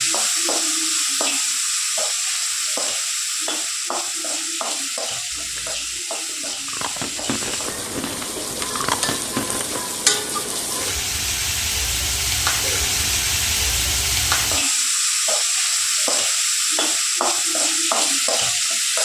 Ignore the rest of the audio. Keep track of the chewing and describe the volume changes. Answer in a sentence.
The volume of the chewing goes up.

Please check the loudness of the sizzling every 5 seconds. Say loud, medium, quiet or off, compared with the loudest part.
loud, medium, loud, loud.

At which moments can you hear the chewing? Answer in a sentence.
The chewing can be heard from 5.3 to 9.8 s.